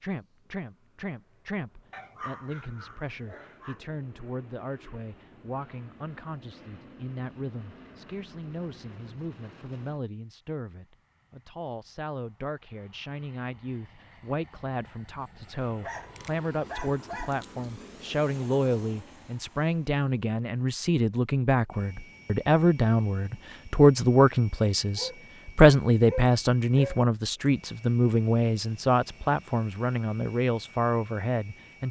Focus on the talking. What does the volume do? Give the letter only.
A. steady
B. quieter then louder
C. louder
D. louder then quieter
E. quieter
C.